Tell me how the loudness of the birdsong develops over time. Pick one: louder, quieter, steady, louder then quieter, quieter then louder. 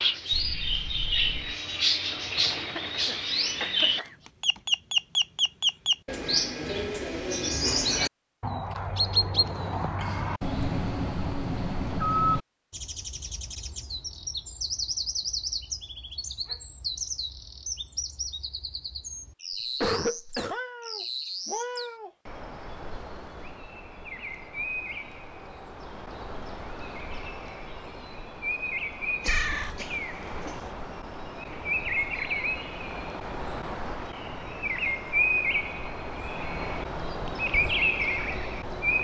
quieter then louder.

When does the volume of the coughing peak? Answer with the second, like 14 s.
20 s.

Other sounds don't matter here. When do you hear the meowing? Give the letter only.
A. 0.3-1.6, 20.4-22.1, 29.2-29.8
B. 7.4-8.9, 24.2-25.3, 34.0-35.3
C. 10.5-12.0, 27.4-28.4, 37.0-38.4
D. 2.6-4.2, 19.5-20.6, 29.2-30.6
A.